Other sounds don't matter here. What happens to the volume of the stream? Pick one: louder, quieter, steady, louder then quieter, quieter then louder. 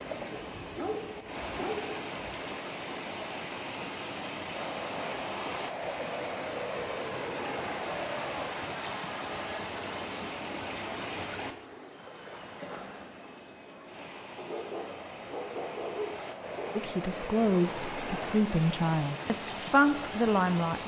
quieter then louder.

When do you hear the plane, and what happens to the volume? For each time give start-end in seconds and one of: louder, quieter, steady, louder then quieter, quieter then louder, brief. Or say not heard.
4.5-18.4 quieter then louder.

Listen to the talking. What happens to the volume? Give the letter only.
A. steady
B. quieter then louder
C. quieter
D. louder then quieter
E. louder
B.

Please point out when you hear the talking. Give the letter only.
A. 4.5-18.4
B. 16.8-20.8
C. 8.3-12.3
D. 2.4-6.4
B.